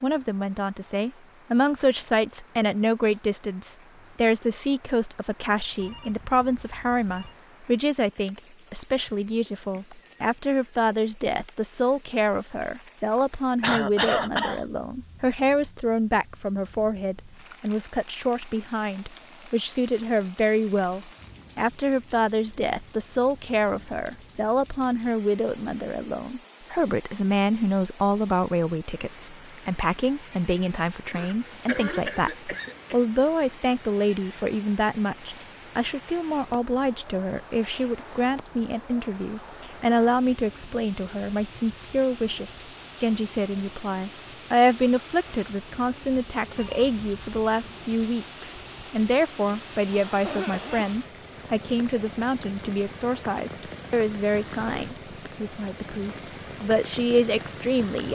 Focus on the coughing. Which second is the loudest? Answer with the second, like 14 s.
14 s.